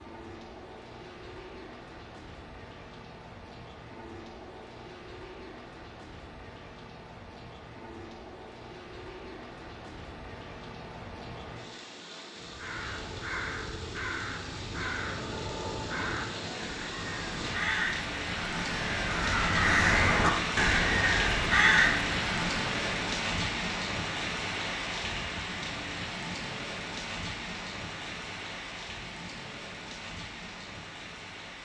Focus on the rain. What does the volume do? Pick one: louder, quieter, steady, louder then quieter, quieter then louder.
louder then quieter.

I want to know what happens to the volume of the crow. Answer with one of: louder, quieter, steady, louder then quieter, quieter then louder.
louder.